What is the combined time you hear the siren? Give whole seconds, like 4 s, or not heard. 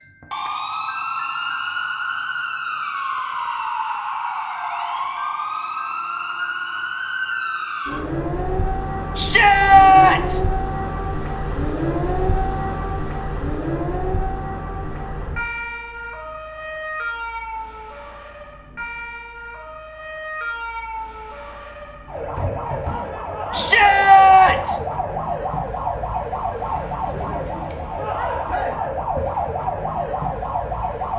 31 s.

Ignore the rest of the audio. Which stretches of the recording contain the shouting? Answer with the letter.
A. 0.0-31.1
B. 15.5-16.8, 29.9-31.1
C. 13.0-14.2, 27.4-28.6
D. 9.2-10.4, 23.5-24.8
D.